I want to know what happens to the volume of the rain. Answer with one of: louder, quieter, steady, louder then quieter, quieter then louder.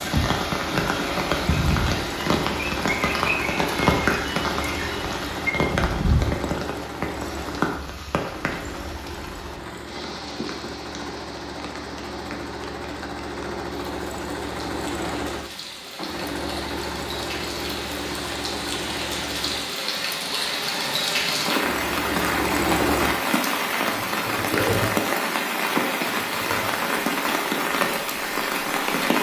quieter then louder.